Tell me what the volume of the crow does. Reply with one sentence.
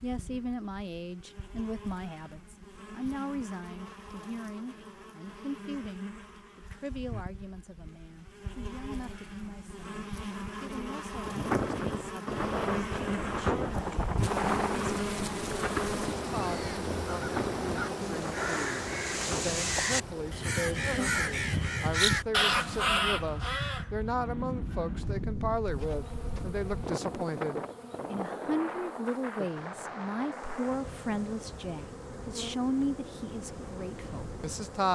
The volume of the crow goes up.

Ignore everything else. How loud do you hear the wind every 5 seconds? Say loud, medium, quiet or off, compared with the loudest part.
off, off, loud, medium, medium, medium, quiet.